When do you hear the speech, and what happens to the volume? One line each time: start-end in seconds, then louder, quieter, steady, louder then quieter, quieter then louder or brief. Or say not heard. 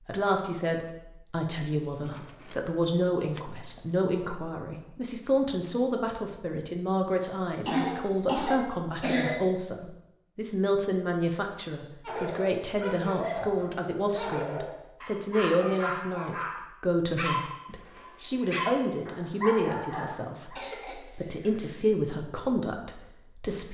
0.1-23.6 steady.